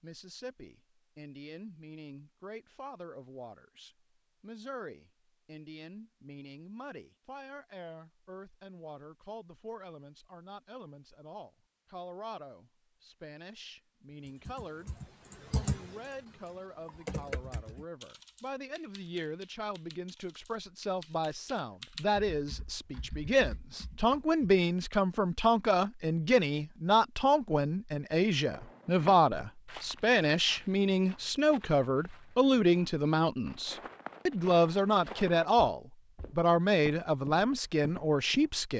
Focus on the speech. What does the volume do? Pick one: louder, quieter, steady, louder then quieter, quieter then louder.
louder.